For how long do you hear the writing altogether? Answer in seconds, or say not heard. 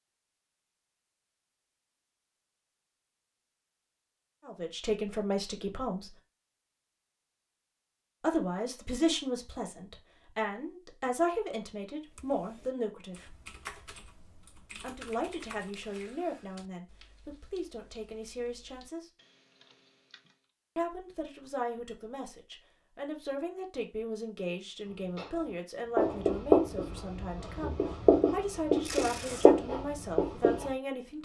6 s.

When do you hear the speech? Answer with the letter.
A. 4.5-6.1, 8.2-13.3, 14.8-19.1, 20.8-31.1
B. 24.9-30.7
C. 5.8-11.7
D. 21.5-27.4
A.